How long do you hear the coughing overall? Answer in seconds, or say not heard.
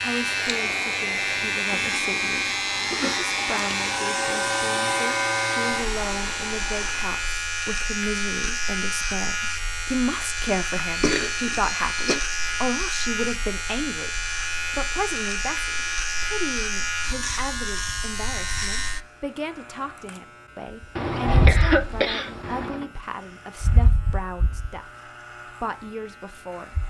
5 s.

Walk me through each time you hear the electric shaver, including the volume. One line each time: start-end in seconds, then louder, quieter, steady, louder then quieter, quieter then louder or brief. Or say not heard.
0.0-26.8 quieter.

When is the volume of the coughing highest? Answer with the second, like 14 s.
22 s.